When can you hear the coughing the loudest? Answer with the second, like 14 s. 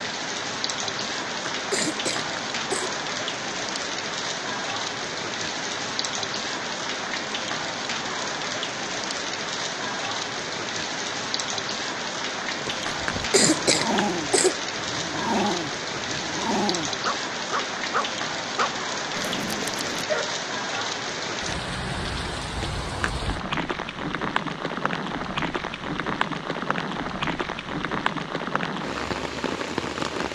14 s.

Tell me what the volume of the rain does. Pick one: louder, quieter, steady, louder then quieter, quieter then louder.
steady.